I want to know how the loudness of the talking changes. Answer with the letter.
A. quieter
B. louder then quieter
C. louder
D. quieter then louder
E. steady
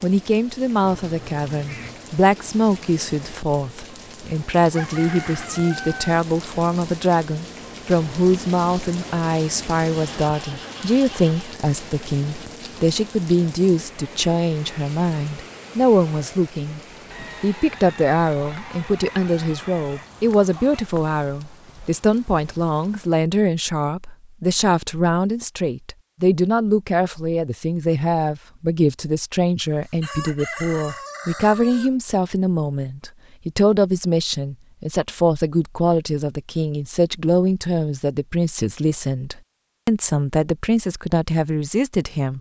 E.